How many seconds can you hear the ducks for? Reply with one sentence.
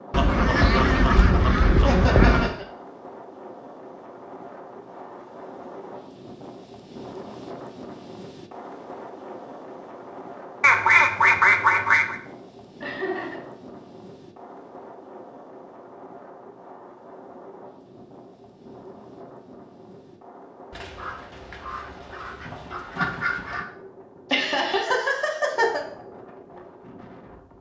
The ducks can be heard for 7 seconds in total.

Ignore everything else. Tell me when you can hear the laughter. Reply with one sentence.
You can hear the laughter from 1.8 to 2.6 s, from 12.8 to 13.4 s and from 24.3 to 25.8 s.